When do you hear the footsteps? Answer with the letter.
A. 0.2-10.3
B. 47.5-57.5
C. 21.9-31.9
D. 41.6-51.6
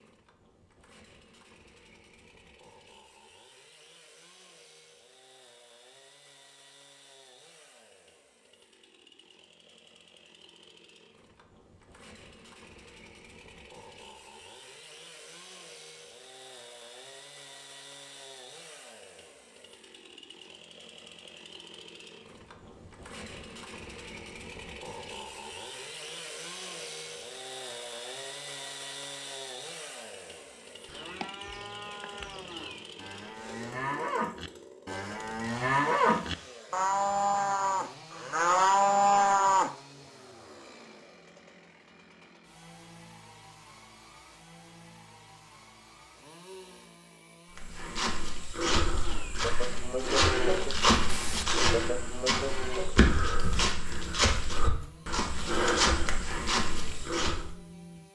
B.